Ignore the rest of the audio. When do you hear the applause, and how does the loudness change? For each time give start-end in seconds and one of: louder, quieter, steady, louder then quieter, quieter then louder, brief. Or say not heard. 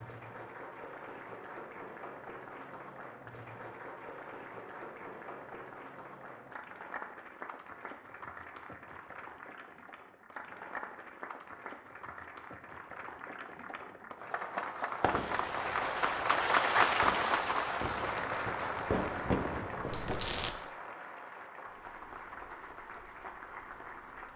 0.0-24.3 louder then quieter.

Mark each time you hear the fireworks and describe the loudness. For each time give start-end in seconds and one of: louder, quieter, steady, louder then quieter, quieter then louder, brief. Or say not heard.
15.0-20.5 louder.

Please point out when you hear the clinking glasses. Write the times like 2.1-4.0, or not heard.
19.9-20.6.